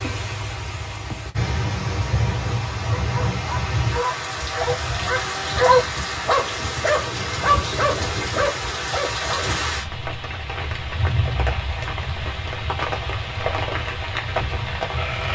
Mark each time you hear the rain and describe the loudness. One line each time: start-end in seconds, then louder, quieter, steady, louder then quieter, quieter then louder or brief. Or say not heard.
0.0-15.3 steady.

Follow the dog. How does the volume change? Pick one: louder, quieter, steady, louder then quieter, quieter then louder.
louder then quieter.